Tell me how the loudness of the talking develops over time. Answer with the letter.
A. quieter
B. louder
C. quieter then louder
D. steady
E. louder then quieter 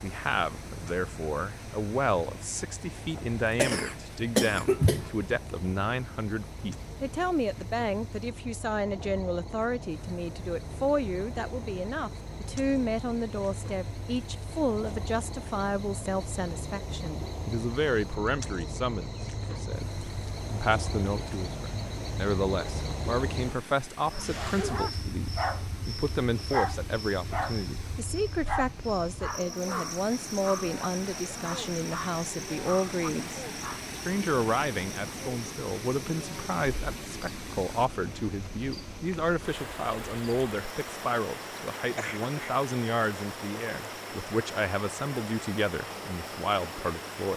D.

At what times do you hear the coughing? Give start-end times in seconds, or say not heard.
3.1-5.1, 42.0-42.6.